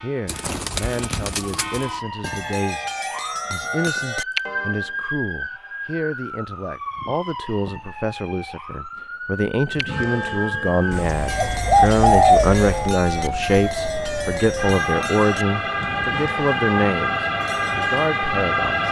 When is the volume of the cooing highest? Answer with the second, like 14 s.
12 s.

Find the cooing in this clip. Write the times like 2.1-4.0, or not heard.
0.2-1.9, 10.9-12.9.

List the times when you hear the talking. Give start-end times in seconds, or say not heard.
0.0-18.8.